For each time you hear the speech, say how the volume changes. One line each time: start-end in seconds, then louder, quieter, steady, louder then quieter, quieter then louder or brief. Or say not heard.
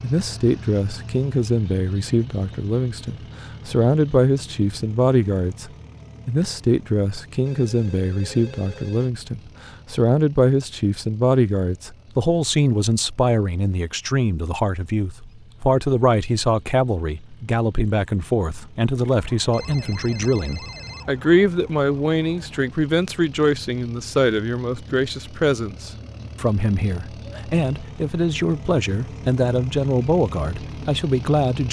0.0-31.6 steady.